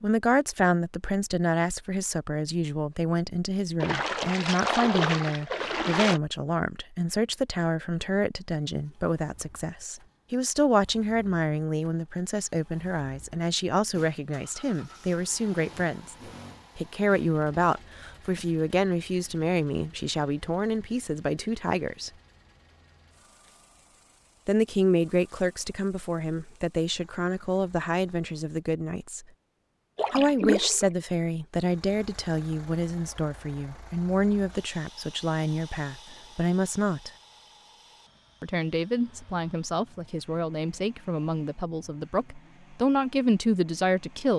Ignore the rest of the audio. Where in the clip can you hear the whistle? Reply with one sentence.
The whistle can't be heard in this clip.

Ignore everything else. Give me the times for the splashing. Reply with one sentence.
You can hear the splashing from 3.8 to 6.2 s and from 29.9 to 30.9 s.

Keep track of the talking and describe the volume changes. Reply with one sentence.
The loudness of the talking stays about the same.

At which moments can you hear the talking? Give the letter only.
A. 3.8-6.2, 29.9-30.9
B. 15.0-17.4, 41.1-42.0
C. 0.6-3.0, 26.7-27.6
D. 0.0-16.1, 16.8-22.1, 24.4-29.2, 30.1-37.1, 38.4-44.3
D.